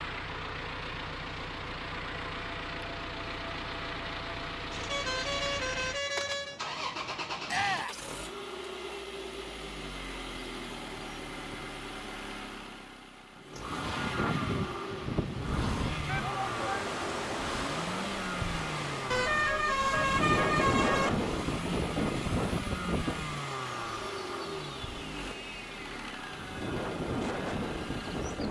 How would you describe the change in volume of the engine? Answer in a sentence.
The loudness of the engine stays about the same.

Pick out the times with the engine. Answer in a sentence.
You can hear the engine from 0.0 to 28.4 s.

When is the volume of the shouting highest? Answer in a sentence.
The volume of the shouting peaks at 8 seconds.